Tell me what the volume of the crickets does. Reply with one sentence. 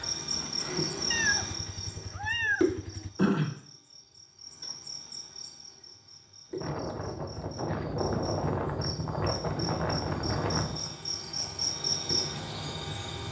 The volume of the crickets goes down, then up.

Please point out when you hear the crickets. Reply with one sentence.
The crickets can be heard from 0.0 to 13.2 s.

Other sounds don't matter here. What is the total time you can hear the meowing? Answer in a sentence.
You can hear the meowing for 2 seconds altogether.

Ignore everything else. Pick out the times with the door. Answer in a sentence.
The door can't be heard in this clip.